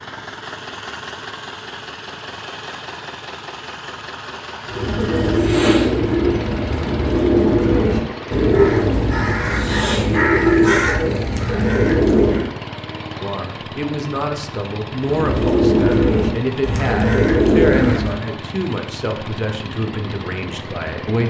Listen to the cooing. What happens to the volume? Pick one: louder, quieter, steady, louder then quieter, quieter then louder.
steady.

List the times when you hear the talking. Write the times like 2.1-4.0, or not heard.
13.2-21.2.